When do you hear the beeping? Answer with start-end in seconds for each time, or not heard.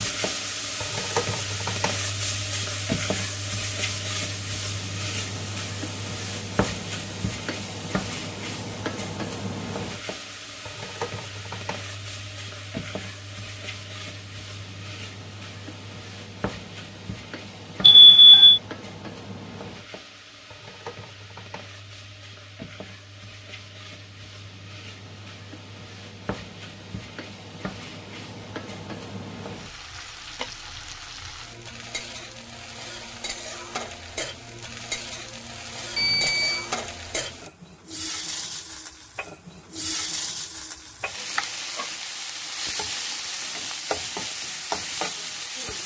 17.8-18.6, 36.0-36.7.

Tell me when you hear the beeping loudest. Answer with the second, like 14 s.
18 s.